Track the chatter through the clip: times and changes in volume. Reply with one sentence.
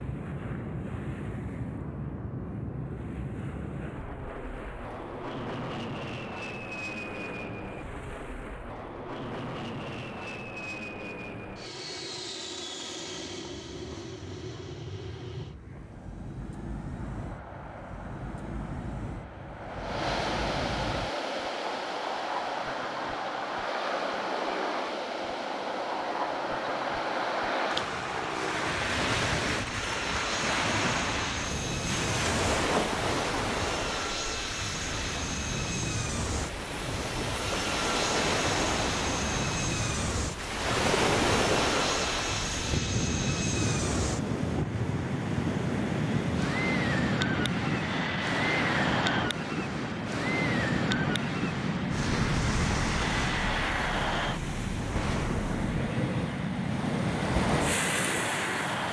You can't hear the chatter here.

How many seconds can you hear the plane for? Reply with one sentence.
The plane can be heard for 59 seconds in total.